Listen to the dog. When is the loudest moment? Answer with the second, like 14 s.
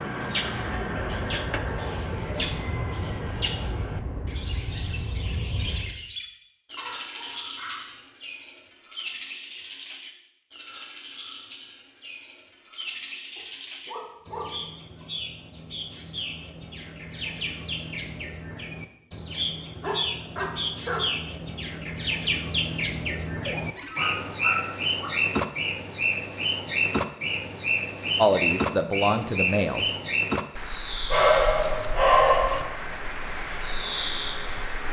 32 s.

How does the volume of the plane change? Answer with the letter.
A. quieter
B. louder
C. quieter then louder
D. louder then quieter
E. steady
E.